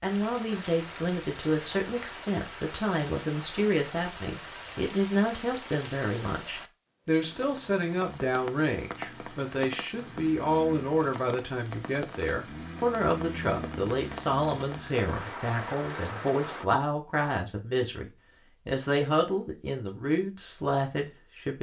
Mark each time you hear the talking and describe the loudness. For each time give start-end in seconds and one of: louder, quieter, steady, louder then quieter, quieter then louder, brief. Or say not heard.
0.0-21.5 steady.